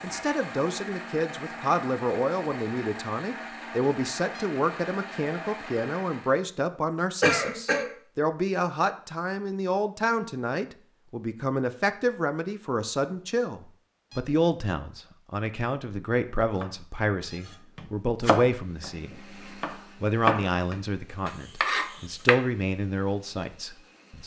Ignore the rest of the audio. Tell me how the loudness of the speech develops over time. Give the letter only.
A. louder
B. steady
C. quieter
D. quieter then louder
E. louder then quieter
B.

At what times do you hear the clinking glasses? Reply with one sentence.
The clinking glasses can't be heard in this clip.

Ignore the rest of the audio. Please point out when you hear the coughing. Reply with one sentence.
You can hear the coughing from 7.2 to 7.9 s.